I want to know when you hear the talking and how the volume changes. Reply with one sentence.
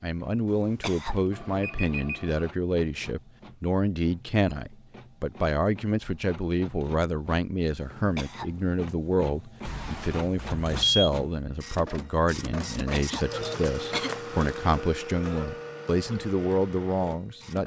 You can hear the talking from 0.0 to 17.6 s, at a steady volume.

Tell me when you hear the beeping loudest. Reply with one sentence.
The volume of the beeping peaks at 11 seconds.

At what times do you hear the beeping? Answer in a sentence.
The beeping can be heard from 1.3 to 2.5 s and from 9.7 to 11.1 s.